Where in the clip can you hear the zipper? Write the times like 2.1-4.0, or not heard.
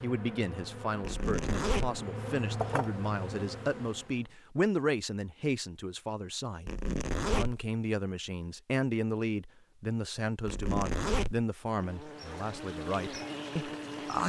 1.0-2.0, 6.7-7.7, 10.4-11.4.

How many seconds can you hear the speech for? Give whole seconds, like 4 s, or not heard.
14 s.